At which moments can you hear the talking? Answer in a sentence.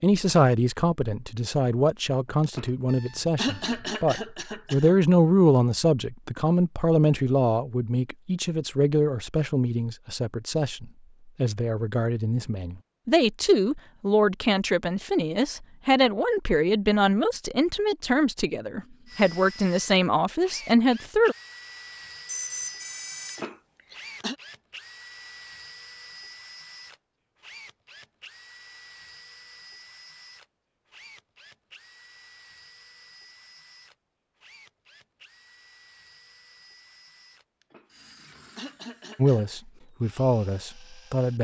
The talking can be heard from 0.0 to 21.4 s and from 39.1 to 41.3 s.